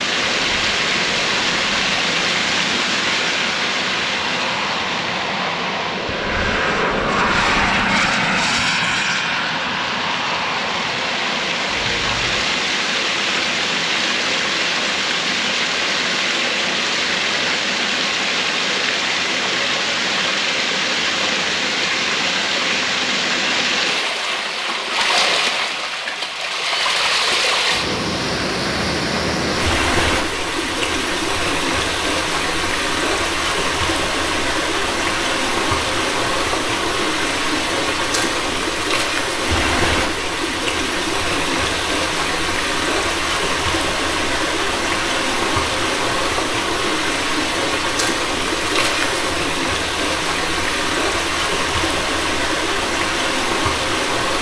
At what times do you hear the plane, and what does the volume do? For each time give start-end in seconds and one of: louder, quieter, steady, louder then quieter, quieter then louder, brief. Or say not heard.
0.0-12.4 louder then quieter.